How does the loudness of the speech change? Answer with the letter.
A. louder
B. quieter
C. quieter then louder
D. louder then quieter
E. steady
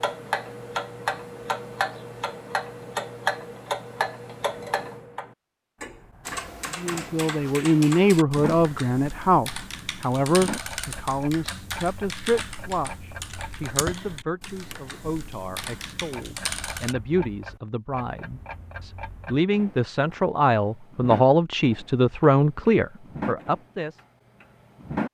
C.